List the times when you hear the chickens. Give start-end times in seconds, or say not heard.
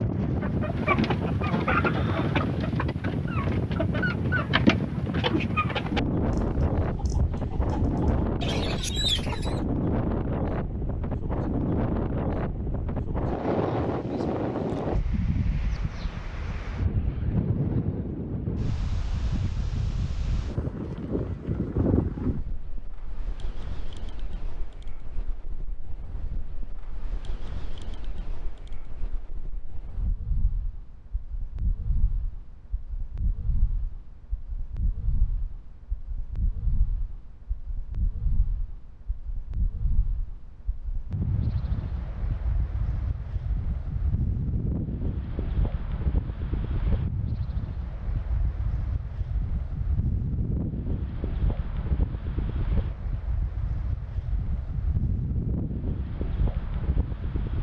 0.3-9.6.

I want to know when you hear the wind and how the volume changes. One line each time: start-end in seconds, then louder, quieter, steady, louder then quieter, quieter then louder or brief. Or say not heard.
0.0-57.5 quieter then louder.